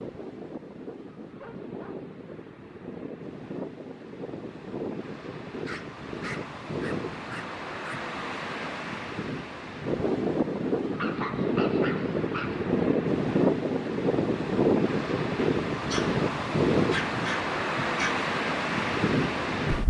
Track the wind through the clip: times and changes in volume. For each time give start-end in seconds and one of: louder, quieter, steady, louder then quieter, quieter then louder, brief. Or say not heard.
0.0-19.8 louder.